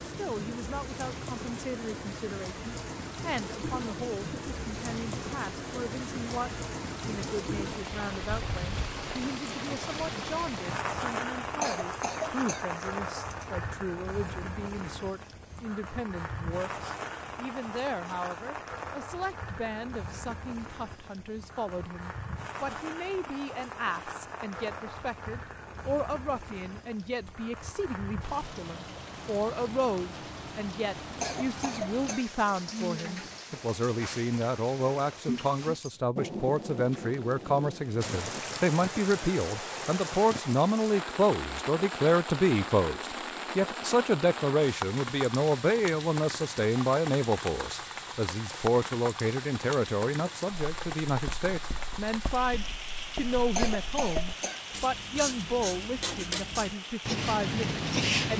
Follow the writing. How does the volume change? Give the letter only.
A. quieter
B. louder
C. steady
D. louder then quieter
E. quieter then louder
B.